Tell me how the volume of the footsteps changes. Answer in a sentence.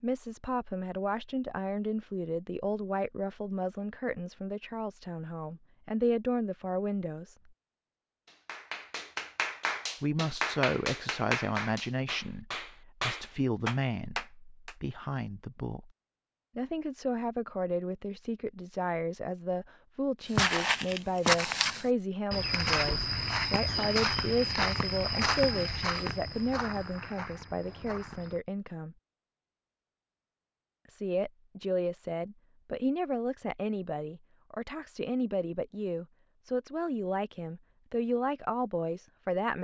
The loudness of the footsteps goes down.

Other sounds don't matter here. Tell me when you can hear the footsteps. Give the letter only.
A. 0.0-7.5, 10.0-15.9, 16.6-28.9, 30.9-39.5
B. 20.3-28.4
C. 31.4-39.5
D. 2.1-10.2
B.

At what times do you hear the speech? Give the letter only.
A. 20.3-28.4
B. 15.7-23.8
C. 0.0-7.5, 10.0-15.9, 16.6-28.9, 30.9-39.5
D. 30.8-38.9
C.